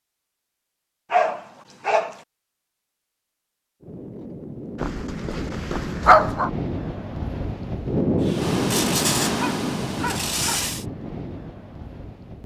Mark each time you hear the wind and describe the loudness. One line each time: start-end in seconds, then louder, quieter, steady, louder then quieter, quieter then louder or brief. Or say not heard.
3.8-12.4 louder then quieter.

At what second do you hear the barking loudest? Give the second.
6 s.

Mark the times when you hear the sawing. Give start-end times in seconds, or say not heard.
8.2-10.8.